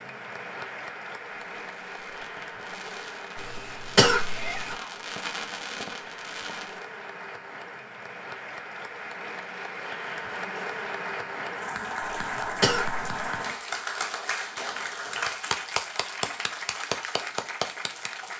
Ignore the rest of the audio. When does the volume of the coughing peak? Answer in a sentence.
The loudest moment of the coughing is at 4 seconds.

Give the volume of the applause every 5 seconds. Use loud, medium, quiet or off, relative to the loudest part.
medium, medium, loud, loud.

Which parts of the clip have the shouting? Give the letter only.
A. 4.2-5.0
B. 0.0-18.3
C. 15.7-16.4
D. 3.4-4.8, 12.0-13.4
A.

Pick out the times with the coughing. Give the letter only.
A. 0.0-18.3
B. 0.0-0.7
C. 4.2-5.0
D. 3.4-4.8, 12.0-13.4
D.